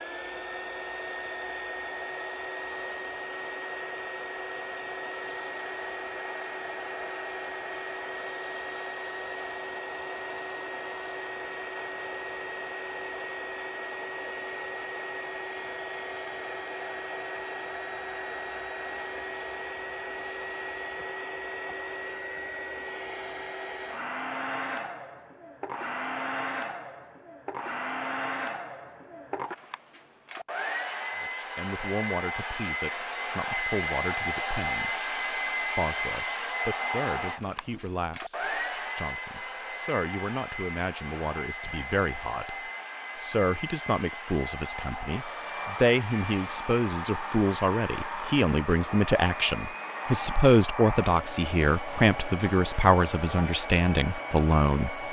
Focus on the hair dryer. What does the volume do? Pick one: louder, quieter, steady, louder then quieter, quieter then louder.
steady.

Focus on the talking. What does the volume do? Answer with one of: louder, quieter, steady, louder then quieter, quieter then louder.
louder.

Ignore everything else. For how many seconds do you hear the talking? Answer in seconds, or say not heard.
23 s.